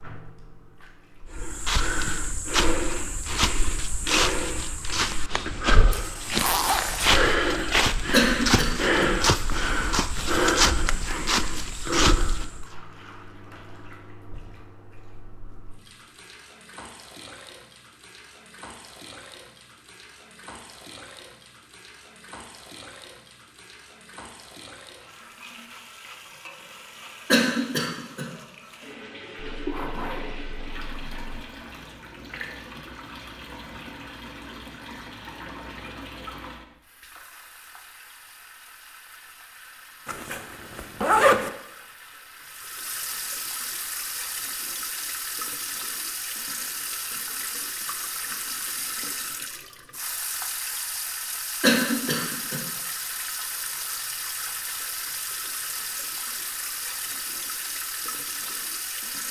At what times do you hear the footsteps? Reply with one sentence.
The footsteps can be heard from 1.3 to 12.7 s.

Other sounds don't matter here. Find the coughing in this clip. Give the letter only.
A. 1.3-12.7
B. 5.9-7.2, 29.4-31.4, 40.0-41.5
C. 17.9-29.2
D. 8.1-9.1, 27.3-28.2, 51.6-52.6
D.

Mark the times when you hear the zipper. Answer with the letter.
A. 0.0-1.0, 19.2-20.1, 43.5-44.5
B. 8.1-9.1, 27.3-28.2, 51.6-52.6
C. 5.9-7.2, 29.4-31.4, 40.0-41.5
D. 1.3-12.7
C.